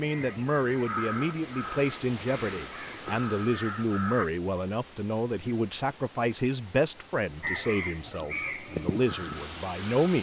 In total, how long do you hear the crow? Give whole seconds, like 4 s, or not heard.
7 s.